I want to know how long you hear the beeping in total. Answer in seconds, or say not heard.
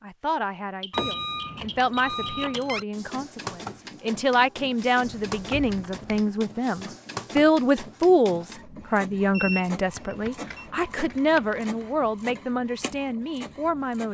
3 s.